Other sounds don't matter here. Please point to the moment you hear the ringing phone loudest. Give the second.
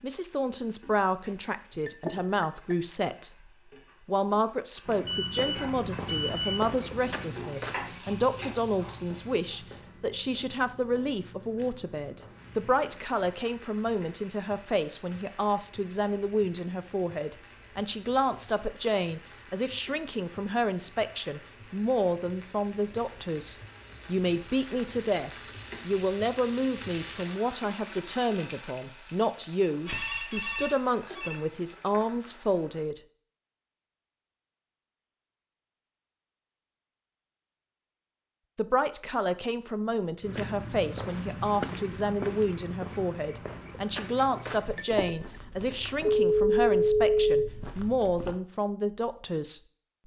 47 s.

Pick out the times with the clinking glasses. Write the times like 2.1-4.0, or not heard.
1.2-2.8, 44.1-45.4.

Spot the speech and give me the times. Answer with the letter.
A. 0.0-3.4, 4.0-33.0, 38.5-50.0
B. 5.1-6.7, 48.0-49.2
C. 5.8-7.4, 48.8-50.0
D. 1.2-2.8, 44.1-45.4
A.